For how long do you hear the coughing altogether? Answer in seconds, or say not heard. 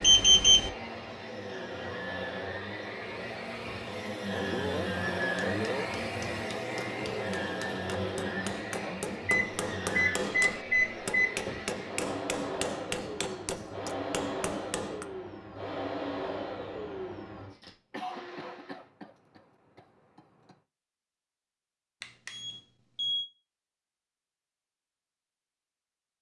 4 s.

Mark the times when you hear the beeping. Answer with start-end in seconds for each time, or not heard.
0.0-0.7, 9.2-11.2, 22.0-23.2.